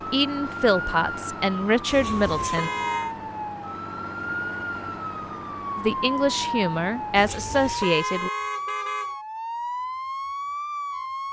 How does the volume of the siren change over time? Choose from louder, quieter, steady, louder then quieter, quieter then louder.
steady.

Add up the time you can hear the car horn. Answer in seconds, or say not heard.
3 s.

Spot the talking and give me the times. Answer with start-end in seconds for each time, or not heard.
0.1-2.7, 5.8-8.3.